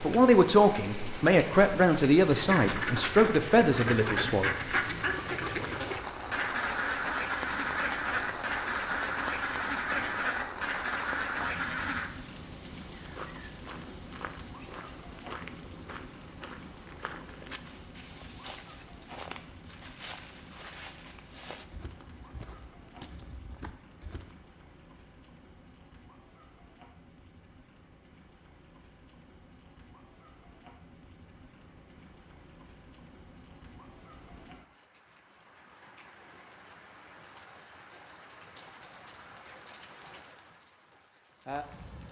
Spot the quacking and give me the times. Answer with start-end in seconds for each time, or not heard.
2.3-12.1.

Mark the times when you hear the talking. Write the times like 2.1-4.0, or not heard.
0.0-4.5.